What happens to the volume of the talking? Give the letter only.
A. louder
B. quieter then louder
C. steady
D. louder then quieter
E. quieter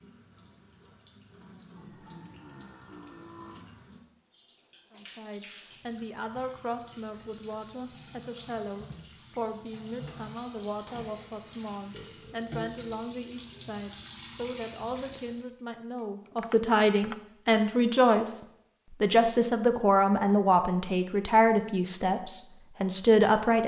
A.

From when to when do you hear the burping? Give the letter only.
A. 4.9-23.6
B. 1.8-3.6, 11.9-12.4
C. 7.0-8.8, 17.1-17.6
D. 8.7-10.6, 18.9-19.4
B.